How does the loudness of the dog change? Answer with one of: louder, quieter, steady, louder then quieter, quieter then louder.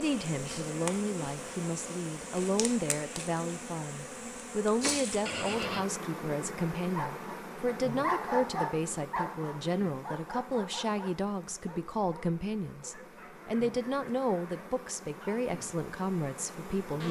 quieter.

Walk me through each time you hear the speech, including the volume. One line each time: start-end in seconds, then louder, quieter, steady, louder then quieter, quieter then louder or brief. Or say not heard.
0.0-17.0 steady.